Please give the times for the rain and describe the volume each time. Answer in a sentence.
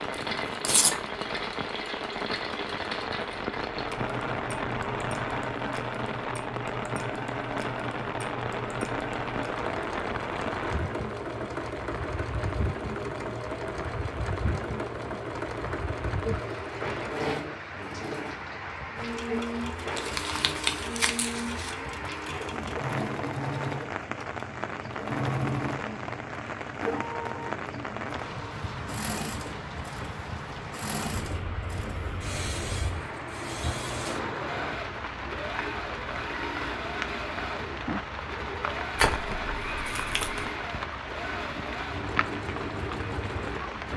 The rain can be heard from 0.0 to 43.9 s, at a steady volume.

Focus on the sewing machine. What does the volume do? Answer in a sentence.
The loudness of the sewing machine stays about the same.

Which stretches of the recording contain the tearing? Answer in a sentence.
You can hear the tearing from 0.1 to 0.9 s, from 19.9 to 21.7 s and from 39.0 to 40.5 s.